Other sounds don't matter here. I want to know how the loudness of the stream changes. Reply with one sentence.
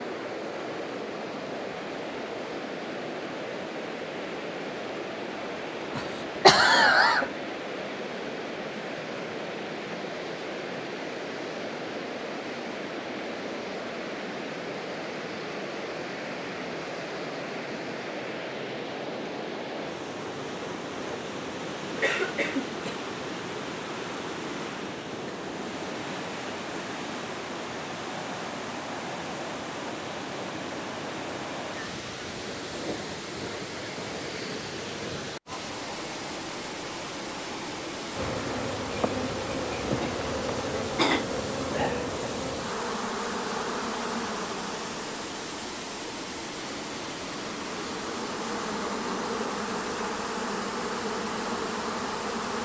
The volume of the stream stays about the same.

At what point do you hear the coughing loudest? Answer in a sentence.
The volume of the coughing peaks at 7 seconds.